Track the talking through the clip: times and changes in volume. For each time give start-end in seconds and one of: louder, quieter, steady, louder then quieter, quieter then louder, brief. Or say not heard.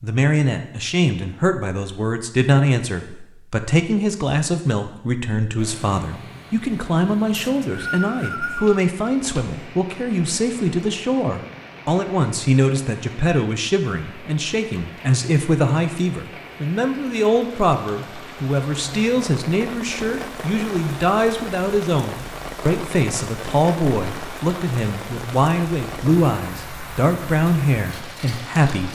0.0-28.9 steady.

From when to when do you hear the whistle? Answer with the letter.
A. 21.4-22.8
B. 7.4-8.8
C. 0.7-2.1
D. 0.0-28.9
B.